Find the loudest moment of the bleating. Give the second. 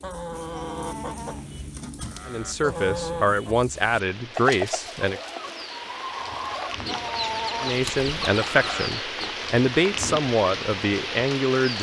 7 s.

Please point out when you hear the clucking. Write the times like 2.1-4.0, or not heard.
0.0-9.3.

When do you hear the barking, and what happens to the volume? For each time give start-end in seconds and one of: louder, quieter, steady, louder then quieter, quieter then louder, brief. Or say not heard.
not heard.